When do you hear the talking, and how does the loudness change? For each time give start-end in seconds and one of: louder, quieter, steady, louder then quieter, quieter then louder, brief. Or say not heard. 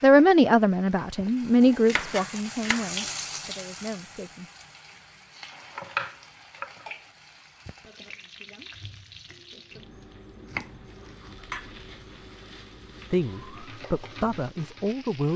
0.0-4.5 quieter
13.1-15.3 brief.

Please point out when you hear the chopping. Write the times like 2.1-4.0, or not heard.
1.9-2.9, 5.8-6.8, 10.4-12.0.